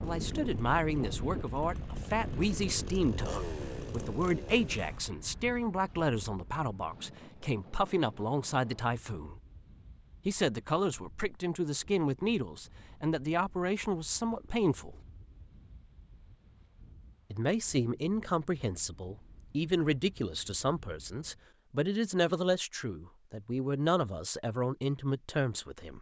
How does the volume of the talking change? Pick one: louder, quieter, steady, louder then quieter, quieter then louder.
steady.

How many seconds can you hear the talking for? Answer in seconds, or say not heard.
23 s.